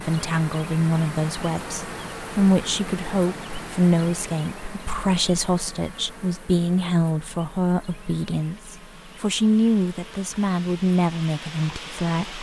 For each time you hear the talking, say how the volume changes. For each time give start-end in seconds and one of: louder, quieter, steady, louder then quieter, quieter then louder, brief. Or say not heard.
0.0-12.3 steady.